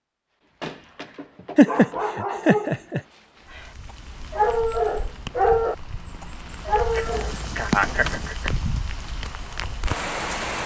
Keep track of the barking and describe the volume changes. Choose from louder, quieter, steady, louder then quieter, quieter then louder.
louder.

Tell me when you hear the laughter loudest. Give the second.
2 s.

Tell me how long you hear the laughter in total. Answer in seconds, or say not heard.
3 s.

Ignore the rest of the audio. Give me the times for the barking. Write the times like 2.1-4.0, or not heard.
0.6-7.3.